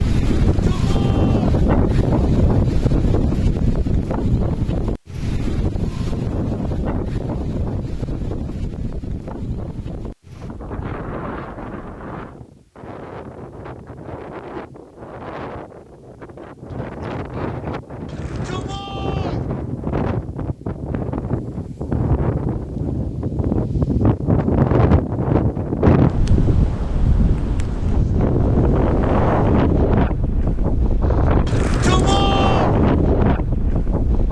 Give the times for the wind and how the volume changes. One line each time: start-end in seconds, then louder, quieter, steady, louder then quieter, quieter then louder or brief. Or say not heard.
0.0-34.2 quieter then louder.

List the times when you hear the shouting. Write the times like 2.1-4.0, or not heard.
0.4-1.6, 18.1-19.4, 31.4-32.7.